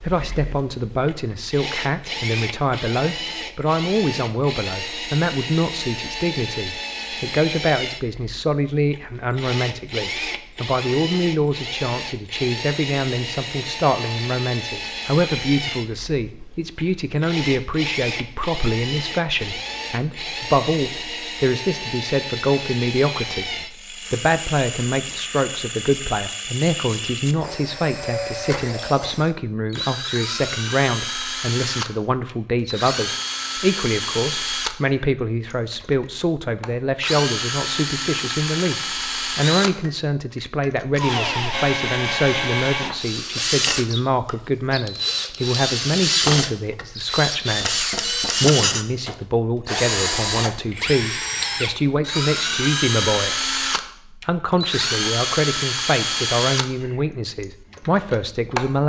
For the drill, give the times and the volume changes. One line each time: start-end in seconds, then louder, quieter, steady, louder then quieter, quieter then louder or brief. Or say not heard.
0.0-58.8 louder.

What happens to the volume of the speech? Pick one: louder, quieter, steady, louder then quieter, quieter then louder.
steady.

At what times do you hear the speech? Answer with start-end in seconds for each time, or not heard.
0.0-58.8.